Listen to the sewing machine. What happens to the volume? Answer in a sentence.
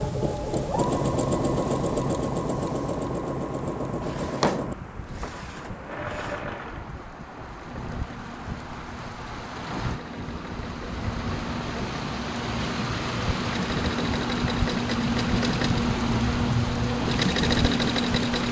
The loudness of the sewing machine goes down, then up.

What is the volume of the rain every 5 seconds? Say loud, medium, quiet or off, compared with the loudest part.
quiet, medium, loud, loud.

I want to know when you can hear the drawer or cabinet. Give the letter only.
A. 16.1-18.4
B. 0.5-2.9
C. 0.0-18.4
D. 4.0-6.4
D.